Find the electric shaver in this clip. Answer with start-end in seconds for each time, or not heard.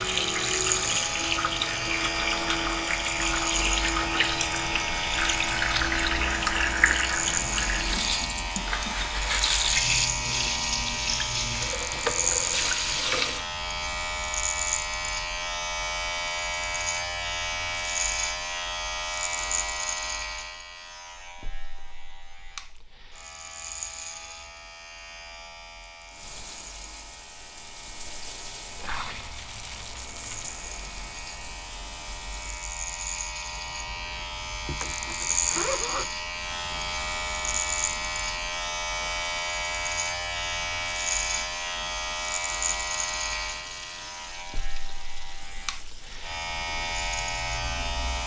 0.0-48.2.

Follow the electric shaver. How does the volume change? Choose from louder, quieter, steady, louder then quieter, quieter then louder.
quieter then louder.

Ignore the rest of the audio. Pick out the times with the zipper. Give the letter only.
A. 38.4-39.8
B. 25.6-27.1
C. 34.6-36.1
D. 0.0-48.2
C.